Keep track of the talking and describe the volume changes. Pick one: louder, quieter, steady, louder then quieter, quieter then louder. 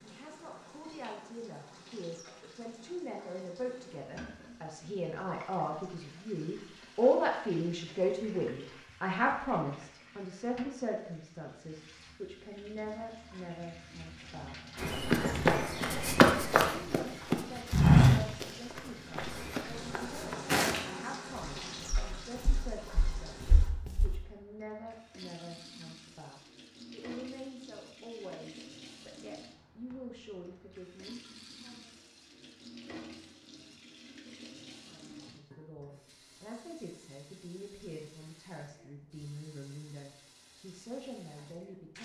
quieter.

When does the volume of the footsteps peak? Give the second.
18 s.